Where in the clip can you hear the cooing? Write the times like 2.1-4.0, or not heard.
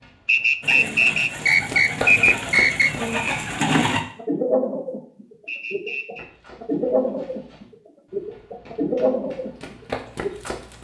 0.6-10.3.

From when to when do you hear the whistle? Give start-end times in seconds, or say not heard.
0.2-2.9, 5.5-6.2.